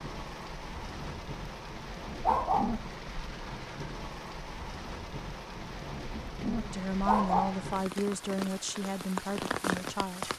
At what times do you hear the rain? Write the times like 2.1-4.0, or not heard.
0.0-10.3.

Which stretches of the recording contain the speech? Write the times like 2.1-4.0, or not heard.
6.6-10.3.